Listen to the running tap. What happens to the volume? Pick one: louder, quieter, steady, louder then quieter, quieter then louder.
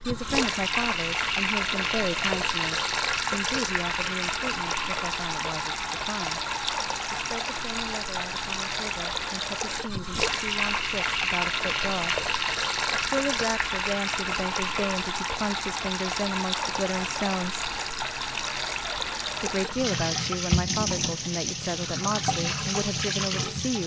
steady.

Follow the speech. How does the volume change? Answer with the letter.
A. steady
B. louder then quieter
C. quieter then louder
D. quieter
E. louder
C.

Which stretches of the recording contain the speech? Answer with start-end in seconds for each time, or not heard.
0.1-6.5, 7.1-12.2, 12.9-17.6, 19.4-23.8.